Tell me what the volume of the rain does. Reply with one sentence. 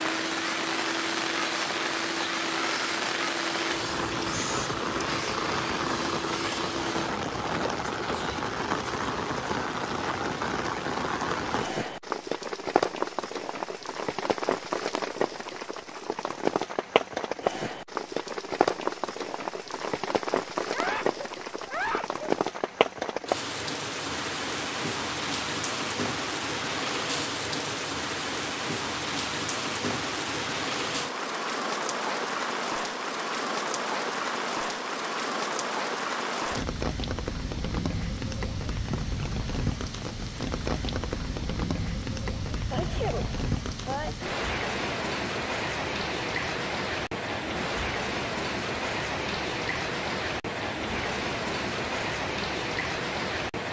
The loudness of the rain stays about the same.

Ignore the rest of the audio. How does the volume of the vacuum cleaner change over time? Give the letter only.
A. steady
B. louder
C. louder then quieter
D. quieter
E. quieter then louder
A.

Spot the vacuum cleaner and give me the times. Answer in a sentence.
You can hear the vacuum cleaner from 0.0 to 7.2 s.